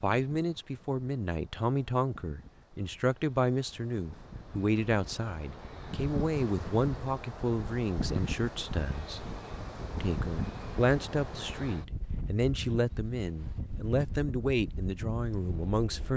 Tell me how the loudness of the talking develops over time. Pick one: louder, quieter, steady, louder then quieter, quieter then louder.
steady.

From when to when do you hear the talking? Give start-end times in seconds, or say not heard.
0.0-9.2, 10.0-16.1.